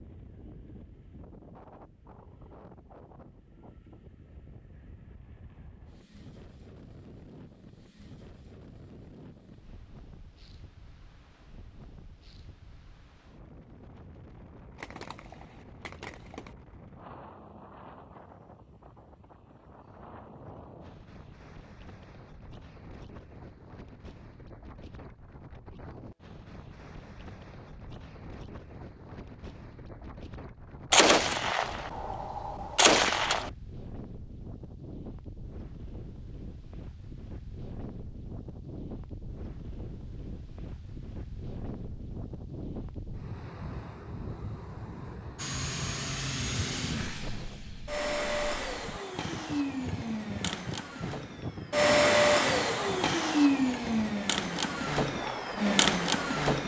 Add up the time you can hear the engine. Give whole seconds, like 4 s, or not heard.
11 s.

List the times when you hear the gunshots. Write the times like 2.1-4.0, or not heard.
14.8-16.6, 30.9-33.5.